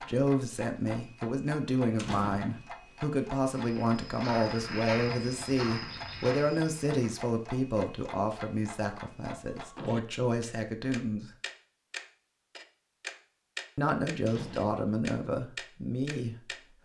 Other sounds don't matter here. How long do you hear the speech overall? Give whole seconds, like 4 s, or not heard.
14 s.